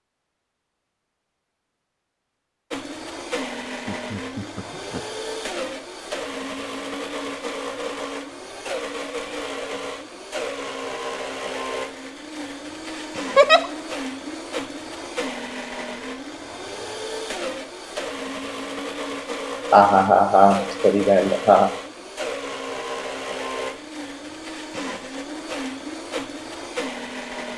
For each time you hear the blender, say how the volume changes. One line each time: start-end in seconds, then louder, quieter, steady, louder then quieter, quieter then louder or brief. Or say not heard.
2.7-27.5 steady.